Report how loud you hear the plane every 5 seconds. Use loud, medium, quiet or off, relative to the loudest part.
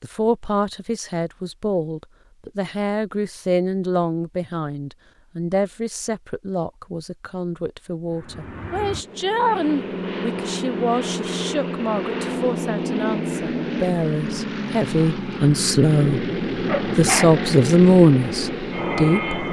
off, medium, loud, loud.